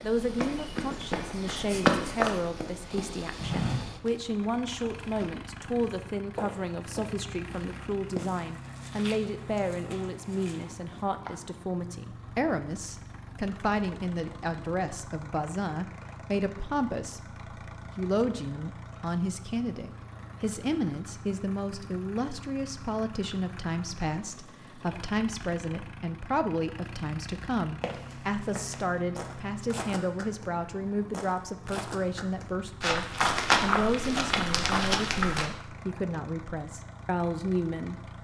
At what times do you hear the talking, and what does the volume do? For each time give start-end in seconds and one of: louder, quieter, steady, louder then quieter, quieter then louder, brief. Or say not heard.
0.0-38.0 steady.